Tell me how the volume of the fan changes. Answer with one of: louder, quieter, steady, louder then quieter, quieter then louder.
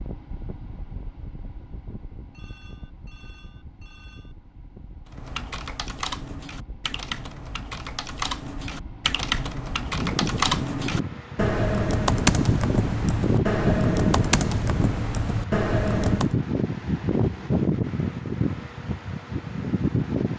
louder.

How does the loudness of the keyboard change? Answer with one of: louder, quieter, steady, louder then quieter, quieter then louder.
louder.